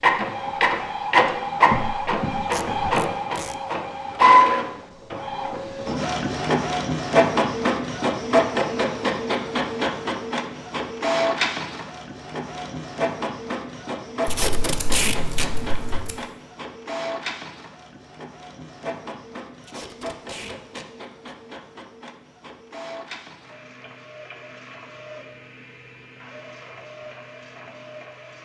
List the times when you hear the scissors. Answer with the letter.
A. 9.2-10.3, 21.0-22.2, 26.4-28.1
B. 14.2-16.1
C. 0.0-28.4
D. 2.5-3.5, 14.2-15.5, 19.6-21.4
B.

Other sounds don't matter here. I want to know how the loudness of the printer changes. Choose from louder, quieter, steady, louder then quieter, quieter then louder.
quieter.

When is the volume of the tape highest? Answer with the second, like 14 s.
15 s.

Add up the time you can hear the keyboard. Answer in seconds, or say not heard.
not heard.